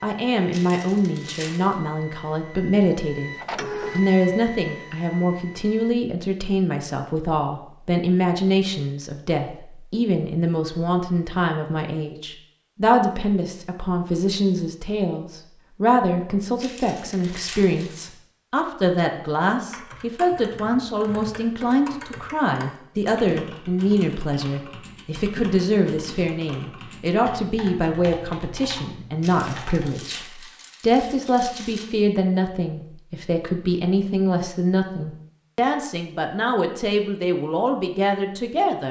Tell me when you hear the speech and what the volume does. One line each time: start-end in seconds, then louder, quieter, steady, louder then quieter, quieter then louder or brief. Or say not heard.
0.0-38.8 steady.